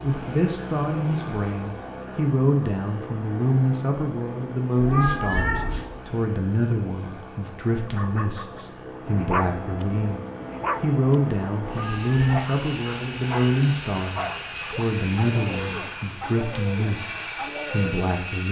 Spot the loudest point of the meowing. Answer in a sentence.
The volume of the meowing peaks at 5 seconds.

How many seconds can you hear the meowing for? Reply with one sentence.
The meowing can be heard for 2 seconds in total.